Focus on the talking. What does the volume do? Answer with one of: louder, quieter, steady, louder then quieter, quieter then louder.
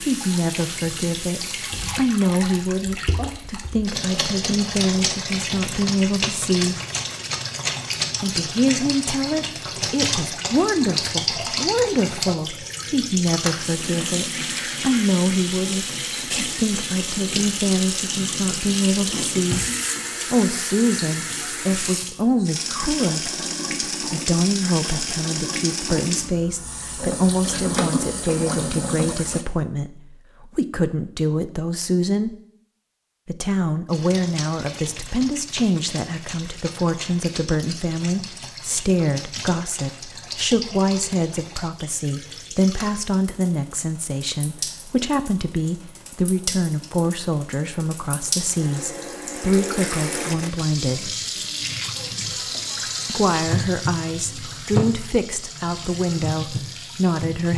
steady.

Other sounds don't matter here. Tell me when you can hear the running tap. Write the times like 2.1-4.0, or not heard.
0.0-29.4, 33.9-57.5.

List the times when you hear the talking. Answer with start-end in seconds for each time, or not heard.
0.0-6.8, 8.2-19.6, 20.3-32.4, 33.2-51.1, 53.0-57.5.